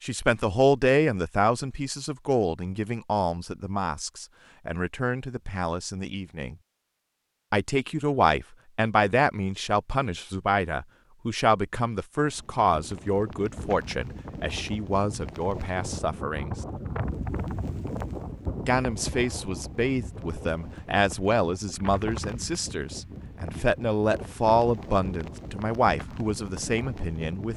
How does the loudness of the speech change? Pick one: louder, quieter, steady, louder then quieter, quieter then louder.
steady.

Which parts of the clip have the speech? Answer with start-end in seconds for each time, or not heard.
0.0-6.5, 7.5-16.6, 18.6-27.5.